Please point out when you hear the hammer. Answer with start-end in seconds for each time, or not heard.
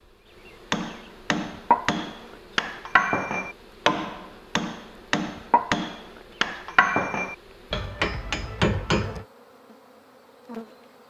0.7-9.2.